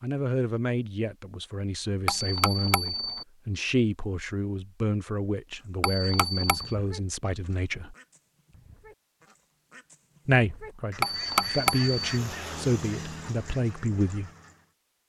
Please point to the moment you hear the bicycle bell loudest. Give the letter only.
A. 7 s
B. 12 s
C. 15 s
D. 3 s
B.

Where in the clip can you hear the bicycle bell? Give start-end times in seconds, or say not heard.
2.0-3.2, 5.8-6.8, 11.0-12.2.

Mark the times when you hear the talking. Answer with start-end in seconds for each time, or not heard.
0.0-8.0, 10.2-14.3.